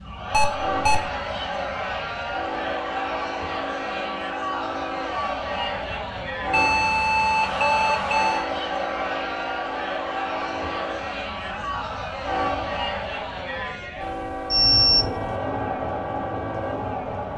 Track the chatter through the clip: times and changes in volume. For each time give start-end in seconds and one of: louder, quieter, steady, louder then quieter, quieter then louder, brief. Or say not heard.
0.0-17.3 steady.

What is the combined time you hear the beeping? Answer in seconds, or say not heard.
4 s.